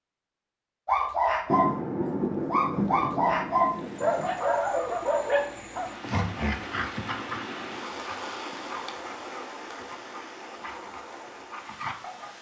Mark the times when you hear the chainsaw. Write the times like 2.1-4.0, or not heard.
not heard.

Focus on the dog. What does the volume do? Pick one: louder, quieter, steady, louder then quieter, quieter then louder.
quieter.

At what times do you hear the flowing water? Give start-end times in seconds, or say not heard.
3.5-12.3.